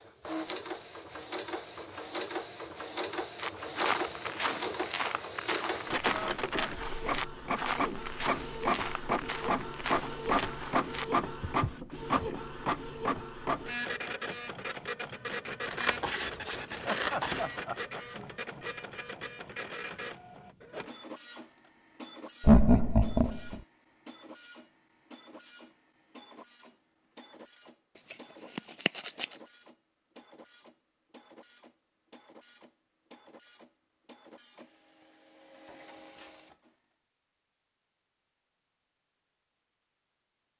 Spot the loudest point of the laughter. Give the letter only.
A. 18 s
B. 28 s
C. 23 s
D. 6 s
C.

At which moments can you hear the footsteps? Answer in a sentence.
The footsteps can be heard from 3.4 to 12.3 s.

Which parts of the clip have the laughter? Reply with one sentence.
The laughter can be heard from 16.9 to 18.2 s and from 22.4 to 23.6 s.